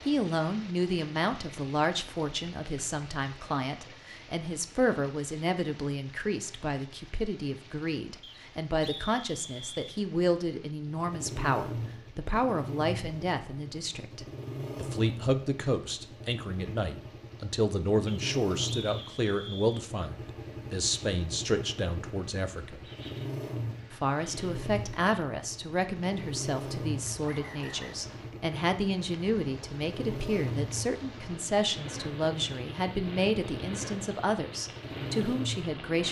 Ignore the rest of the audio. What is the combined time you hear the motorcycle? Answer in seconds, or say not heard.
25 s.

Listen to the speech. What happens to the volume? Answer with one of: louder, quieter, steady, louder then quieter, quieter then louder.
steady.